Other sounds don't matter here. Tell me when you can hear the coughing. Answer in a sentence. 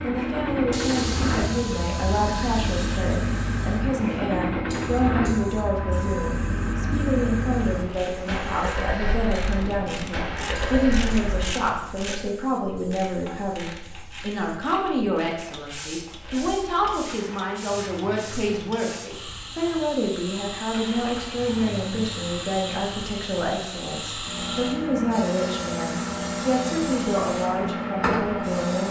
The coughing can't be heard in this clip.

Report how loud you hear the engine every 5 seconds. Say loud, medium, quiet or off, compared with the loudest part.
loud, loud, loud, quiet, medium, loud.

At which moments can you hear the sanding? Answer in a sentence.
The sanding can't be heard in this clip.